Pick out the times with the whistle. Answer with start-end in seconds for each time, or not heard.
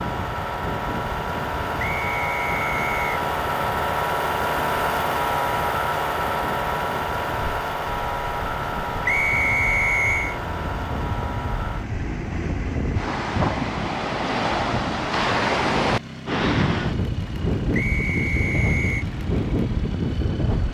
1.8-3.1, 9.1-10.4, 17.7-19.1.